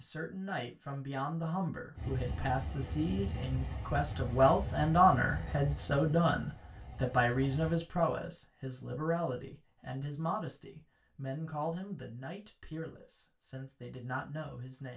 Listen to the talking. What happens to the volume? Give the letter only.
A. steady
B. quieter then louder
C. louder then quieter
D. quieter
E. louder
C.